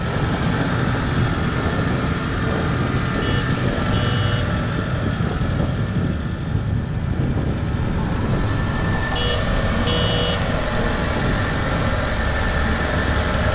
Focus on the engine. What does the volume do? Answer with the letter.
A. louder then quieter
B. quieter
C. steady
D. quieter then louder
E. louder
D.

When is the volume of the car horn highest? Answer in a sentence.
The loudest moment of the car horn is at 10 seconds.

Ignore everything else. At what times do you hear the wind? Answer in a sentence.
The wind can be heard from 0.0 to 13.5 s.